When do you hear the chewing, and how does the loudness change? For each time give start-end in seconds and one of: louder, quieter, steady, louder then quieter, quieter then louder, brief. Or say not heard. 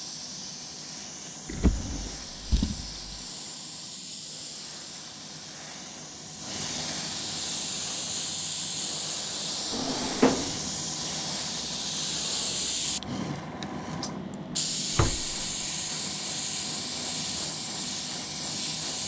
not heard.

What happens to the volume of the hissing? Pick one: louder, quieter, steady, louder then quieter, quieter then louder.
louder.